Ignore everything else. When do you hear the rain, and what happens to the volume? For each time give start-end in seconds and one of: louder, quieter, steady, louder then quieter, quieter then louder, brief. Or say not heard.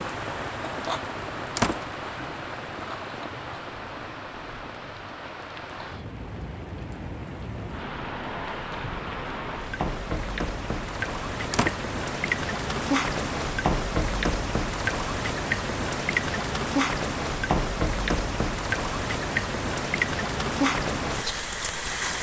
0.0-22.1 louder.